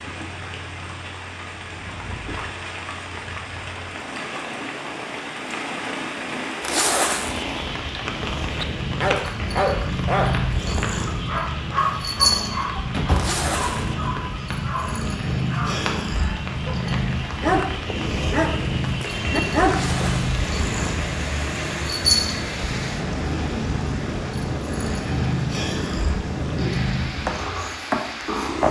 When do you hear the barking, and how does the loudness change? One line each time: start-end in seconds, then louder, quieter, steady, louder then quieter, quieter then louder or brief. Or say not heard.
8.6-20.1 quieter then louder.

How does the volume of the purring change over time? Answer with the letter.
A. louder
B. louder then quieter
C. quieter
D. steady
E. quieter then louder
A.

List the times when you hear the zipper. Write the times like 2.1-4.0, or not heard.
6.6-7.5, 13.1-13.9, 19.6-20.4.